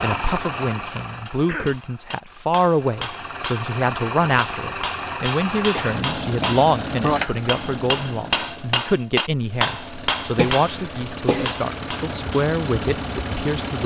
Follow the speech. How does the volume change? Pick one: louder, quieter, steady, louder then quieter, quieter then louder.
steady.